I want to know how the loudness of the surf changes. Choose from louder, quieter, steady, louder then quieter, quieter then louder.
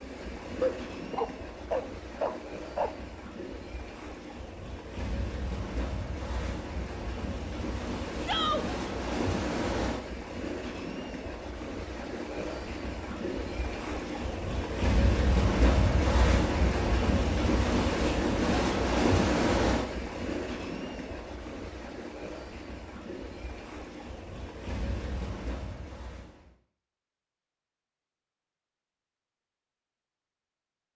louder then quieter.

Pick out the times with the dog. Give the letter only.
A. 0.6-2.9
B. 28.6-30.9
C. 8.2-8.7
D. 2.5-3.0
A.